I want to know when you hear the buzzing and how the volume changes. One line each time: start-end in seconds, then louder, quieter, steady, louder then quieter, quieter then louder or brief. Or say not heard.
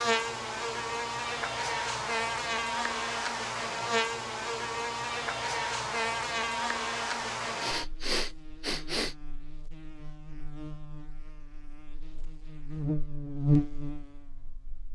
0.0-14.9 quieter then louder.